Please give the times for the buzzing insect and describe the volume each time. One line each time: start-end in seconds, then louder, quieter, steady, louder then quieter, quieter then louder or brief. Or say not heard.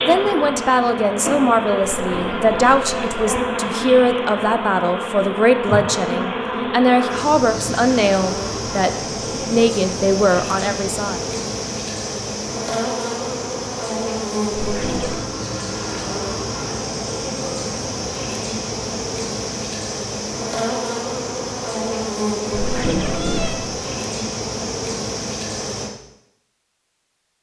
0.0-25.9 steady.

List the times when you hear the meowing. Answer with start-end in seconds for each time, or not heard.
2.0-3.5, 14.6-15.2, 22.5-23.7.